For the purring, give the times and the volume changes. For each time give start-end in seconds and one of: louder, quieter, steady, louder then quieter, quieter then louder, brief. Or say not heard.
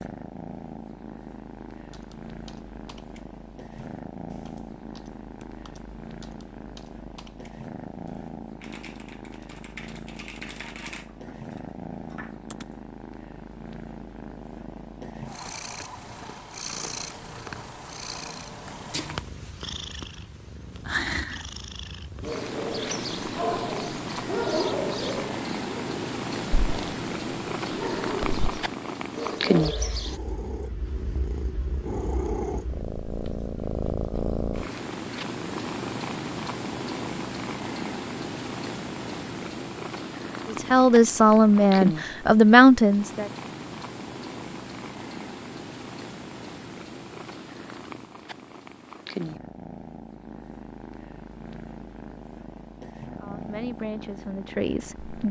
0.0-55.2 louder then quieter.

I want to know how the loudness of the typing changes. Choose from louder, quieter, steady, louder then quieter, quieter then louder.
louder.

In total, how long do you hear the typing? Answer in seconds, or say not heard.
11 s.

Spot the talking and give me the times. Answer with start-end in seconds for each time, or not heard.
40.5-43.3, 53.2-55.2.